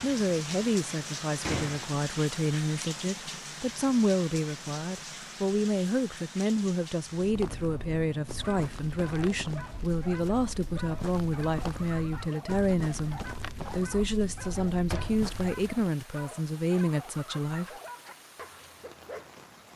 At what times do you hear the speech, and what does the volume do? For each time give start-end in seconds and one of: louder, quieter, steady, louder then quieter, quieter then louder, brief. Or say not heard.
0.0-17.8 steady.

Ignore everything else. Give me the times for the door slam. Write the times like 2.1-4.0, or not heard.
1.4-2.0, 14.8-15.2.